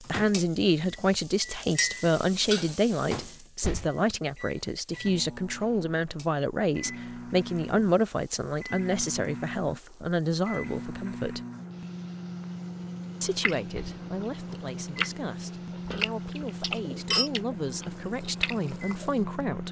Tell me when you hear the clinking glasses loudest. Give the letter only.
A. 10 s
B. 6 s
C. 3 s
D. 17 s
D.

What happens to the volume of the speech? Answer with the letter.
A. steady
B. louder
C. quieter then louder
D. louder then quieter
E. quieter
E.